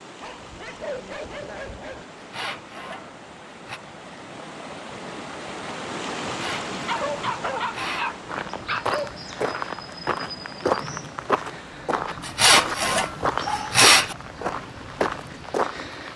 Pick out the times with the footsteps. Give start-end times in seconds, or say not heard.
8.2-16.1.